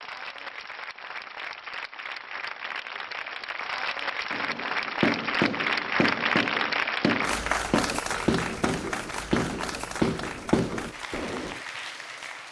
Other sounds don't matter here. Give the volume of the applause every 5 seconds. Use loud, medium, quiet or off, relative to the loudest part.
medium, loud, medium.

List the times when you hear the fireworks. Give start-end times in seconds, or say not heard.
4.3-11.6.